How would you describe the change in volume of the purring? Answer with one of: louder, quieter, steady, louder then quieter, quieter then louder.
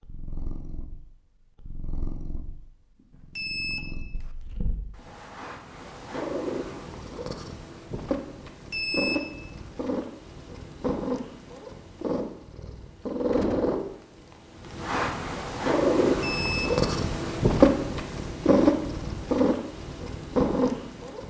louder.